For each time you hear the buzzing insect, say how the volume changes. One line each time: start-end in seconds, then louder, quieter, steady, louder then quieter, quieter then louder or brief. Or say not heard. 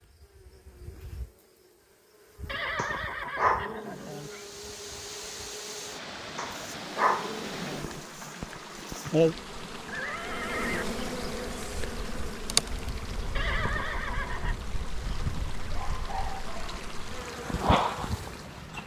0.0-18.8 louder.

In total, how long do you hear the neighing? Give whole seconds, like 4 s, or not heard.
4 s.